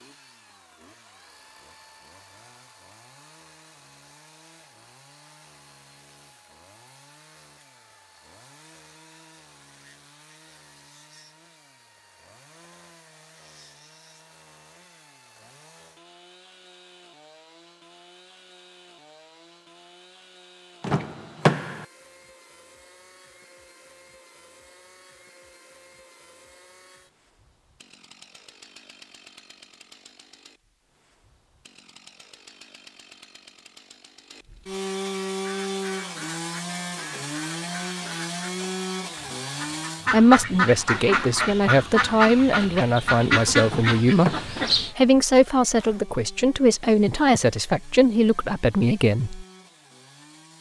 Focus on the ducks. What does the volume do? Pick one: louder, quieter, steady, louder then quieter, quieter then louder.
louder.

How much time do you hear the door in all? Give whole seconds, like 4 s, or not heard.
2 s.